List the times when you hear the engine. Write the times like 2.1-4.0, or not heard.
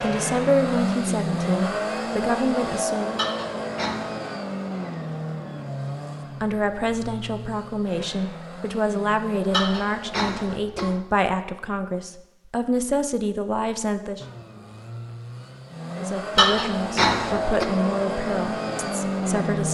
0.0-10.6, 14.2-19.6.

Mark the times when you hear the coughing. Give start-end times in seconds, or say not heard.
3.1-4.2, 9.5-11.0, 16.4-17.6.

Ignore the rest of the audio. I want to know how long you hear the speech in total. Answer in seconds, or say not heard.
15 s.